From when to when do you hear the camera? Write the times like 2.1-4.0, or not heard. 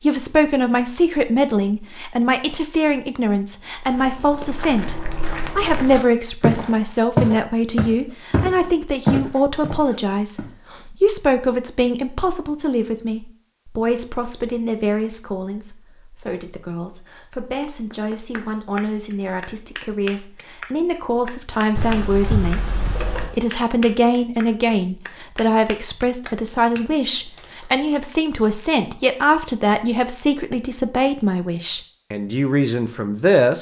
21.8-23.4.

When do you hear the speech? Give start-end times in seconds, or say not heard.
0.0-33.5.